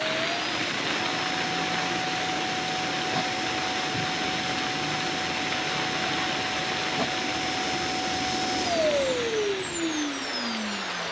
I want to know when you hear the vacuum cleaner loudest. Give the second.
9 s.